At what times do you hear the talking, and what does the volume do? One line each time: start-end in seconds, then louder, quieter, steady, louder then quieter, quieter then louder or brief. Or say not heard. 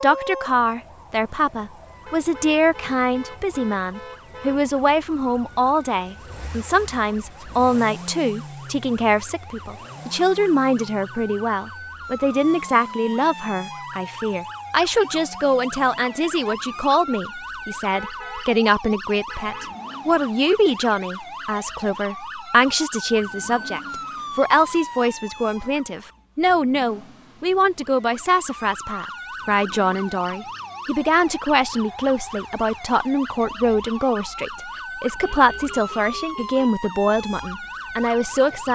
0.0-38.7 steady.